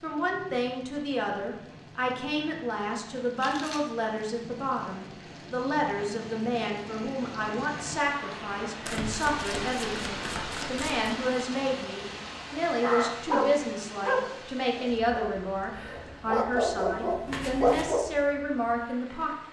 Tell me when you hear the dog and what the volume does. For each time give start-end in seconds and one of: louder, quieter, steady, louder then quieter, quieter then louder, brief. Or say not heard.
12.8-18.1 quieter then louder.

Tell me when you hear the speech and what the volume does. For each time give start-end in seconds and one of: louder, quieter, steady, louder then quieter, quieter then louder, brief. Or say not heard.
0.0-19.3 steady.